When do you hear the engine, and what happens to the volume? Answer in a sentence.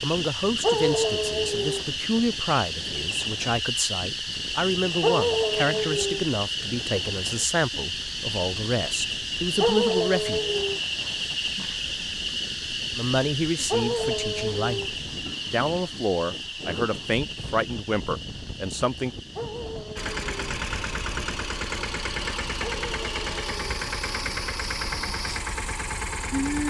You can hear the engine from 19.9 to 26.6 s, at a steady volume.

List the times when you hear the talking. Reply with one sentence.
The talking can be heard from 0.0 to 10.4 s and from 12.9 to 19.1 s.